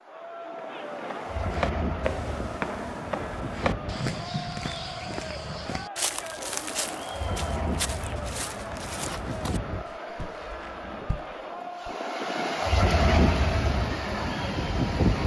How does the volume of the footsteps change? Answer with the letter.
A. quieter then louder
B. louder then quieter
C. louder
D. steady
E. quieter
E.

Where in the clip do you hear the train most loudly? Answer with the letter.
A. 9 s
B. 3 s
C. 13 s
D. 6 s
C.